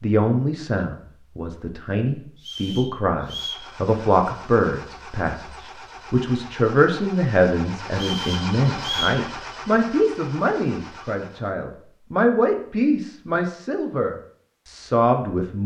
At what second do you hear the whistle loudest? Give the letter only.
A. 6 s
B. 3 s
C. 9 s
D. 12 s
C.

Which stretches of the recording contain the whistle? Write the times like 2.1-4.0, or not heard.
2.4-3.5, 7.9-9.2.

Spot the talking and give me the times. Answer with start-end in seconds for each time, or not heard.
0.0-15.6.